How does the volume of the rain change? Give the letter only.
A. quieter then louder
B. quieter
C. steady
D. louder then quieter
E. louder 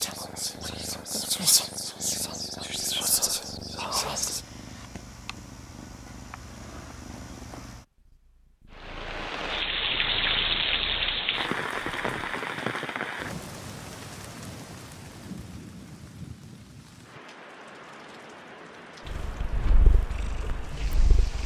B.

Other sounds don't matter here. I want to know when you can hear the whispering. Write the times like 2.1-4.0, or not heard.
0.0-4.4.